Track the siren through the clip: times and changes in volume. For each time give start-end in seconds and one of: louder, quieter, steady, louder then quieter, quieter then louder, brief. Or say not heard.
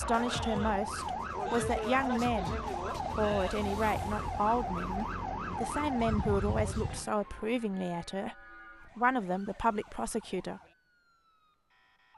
0.0-12.1 quieter.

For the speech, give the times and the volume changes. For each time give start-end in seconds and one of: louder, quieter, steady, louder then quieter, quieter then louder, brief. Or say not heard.
0.0-10.6 steady.